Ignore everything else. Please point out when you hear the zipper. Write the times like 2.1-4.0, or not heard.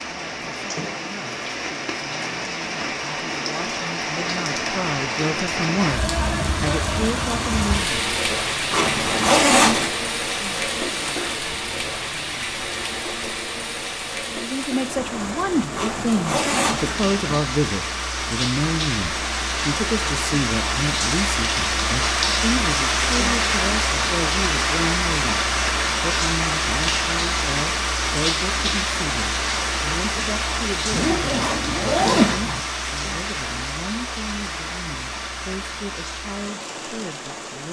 8.7-9.9, 15.7-17.4, 30.9-32.6.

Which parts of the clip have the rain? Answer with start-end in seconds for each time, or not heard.
0.0-37.6.